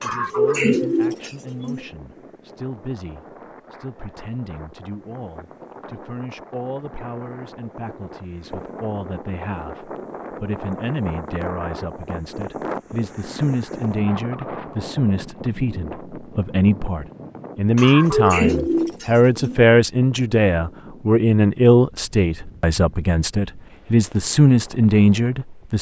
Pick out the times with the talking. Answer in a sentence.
The talking can be heard from 0.0 to 25.7 s.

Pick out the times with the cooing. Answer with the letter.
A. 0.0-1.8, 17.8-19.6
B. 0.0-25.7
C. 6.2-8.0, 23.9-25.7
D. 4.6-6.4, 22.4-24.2
A.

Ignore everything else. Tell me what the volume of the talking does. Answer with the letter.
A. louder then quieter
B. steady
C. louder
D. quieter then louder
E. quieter
C.